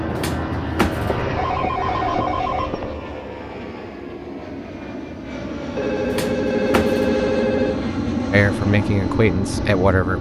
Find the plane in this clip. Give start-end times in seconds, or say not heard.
0.0-10.1.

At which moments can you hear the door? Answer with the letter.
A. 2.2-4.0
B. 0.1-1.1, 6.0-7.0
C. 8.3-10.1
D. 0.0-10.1
B.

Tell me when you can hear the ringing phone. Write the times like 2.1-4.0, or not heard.
1.2-3.0, 5.8-8.0.